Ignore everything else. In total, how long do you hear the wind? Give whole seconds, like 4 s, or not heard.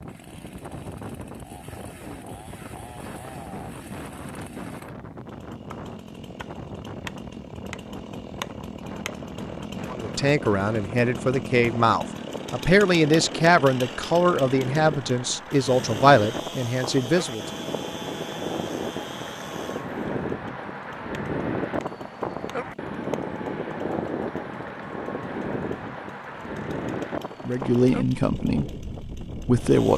30 s.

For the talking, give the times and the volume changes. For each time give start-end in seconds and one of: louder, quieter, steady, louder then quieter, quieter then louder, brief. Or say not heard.
9.9-17.6 steady
27.4-29.9 brief.